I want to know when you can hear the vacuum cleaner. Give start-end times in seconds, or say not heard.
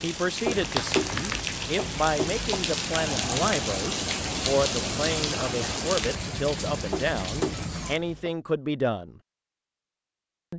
not heard.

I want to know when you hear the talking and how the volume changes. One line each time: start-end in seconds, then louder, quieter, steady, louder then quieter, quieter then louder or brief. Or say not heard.
0.0-9.2 steady.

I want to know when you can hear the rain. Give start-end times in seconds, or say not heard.
0.0-8.0.